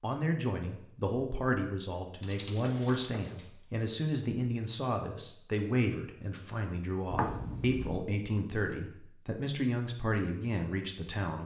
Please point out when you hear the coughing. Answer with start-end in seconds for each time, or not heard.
not heard.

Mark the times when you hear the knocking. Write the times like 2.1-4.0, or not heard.
2.8-3.5, 7.1-8.0.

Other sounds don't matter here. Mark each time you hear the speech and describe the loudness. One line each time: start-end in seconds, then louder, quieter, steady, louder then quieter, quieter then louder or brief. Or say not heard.
0.0-11.4 steady.